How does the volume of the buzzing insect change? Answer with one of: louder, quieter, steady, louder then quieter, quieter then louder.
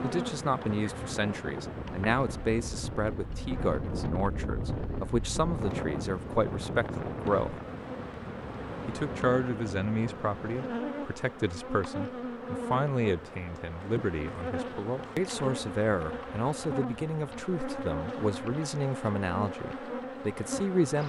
louder.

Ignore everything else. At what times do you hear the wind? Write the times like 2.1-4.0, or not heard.
0.0-10.7.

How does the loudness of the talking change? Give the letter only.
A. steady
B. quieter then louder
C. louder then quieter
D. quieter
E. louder
A.